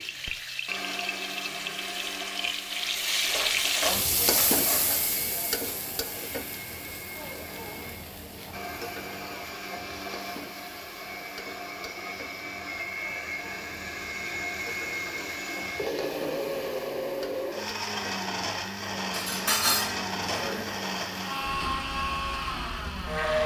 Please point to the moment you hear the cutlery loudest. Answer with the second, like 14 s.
20 s.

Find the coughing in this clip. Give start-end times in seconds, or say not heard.
not heard.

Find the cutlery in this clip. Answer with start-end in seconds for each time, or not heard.
3.2-5.0, 19.1-20.6.